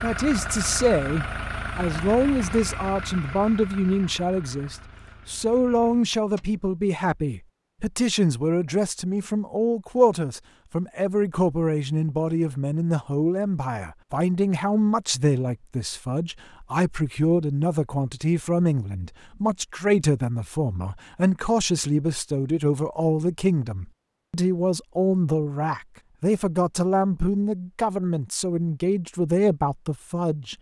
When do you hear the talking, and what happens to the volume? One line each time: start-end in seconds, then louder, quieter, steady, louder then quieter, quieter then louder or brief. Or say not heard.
0.0-30.5 steady.